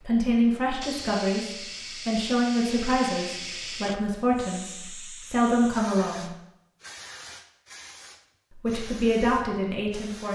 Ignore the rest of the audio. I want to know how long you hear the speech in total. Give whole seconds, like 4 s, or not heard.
8 s.